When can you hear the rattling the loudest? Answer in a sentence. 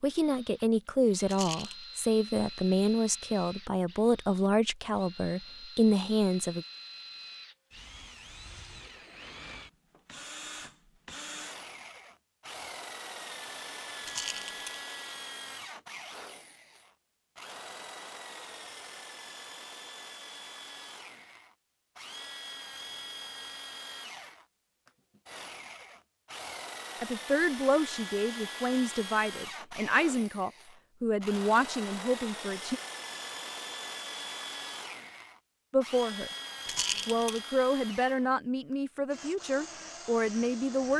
The loudest moment of the rattling is at 37 seconds.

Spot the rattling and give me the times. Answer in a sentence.
You can hear the rattling from 1.2 to 1.8 s, from 14.1 to 14.8 s and from 36.6 to 37.4 s.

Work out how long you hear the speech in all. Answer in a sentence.
You can hear the speech for 17 seconds altogether.